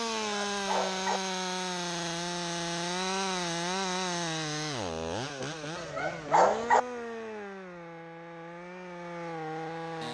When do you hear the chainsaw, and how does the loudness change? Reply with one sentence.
You can hear the chainsaw from 0.0 to 10.0 s, getting quieter.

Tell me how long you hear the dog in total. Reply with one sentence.
The dog can be heard for 2 seconds in total.